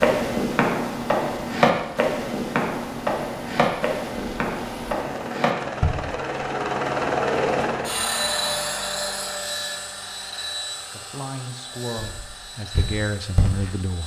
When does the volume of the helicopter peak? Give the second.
7 s.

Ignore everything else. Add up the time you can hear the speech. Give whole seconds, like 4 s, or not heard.
3 s.